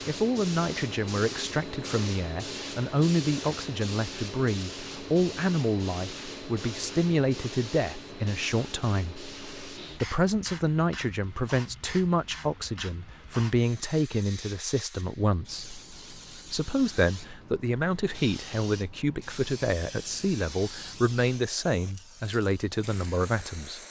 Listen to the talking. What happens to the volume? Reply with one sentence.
The loudness of the talking stays about the same.